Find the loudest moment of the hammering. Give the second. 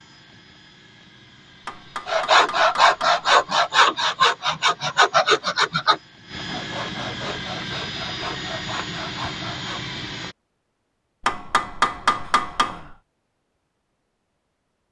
12 s.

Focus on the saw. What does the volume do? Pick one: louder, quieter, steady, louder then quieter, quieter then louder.
quieter.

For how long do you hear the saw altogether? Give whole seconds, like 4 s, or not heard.
8 s.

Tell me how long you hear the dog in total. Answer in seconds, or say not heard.
not heard.